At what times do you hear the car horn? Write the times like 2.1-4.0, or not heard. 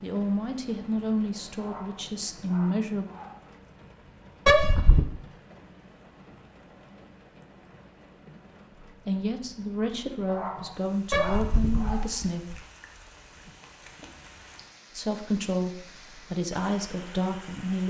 4.5-5.1, 11.1-12.6.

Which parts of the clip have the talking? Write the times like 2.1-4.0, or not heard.
0.0-3.0, 9.1-12.4, 14.9-17.8.